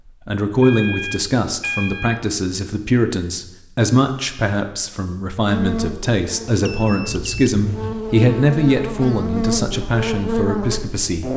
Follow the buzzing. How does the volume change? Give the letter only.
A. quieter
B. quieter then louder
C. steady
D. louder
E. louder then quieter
D.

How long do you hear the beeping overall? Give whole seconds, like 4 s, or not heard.
3 s.